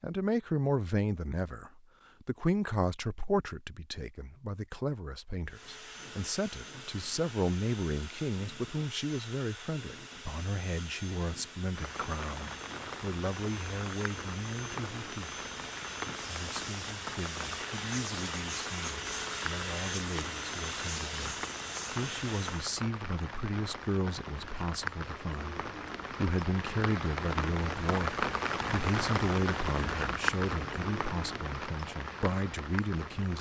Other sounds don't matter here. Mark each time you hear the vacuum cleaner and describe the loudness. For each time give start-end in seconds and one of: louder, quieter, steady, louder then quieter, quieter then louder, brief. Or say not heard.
5.5-22.8 louder.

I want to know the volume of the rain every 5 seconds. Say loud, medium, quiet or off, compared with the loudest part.
off, off, medium, medium, medium, loud, loud.